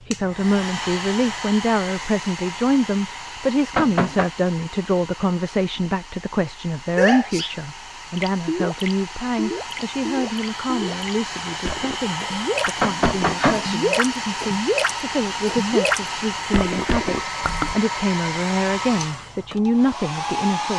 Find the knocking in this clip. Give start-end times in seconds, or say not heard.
3.7-4.3, 12.8-13.7.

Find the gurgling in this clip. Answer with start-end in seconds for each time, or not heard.
8.2-17.8.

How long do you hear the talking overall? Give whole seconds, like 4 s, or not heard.
21 s.